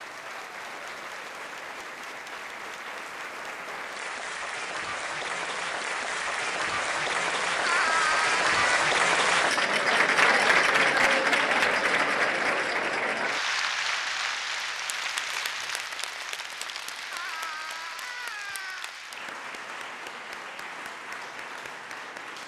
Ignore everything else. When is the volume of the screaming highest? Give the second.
8 s.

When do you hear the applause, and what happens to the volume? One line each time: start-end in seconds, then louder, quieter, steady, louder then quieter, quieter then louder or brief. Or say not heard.
0.0-22.4 louder then quieter.